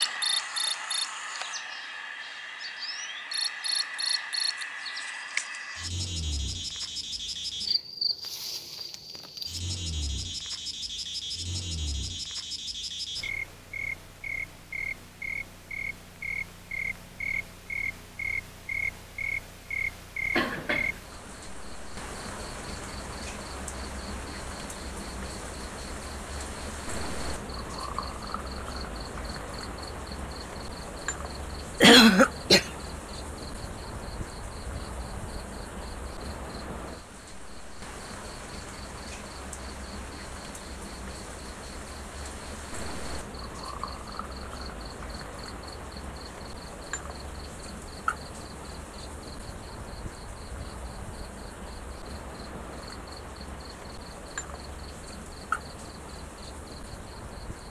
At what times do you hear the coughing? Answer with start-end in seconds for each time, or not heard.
20.3-21.0, 31.8-32.6.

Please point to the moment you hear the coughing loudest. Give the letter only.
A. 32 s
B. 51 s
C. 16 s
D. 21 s
A.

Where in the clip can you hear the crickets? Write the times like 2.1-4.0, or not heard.
0.0-57.6.